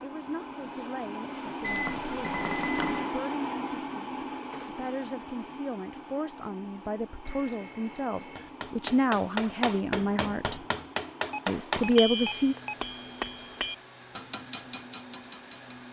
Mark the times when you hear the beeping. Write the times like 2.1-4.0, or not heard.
1.6-3.0, 7.2-8.4, 11.2-12.8.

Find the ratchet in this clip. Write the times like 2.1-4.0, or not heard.
not heard.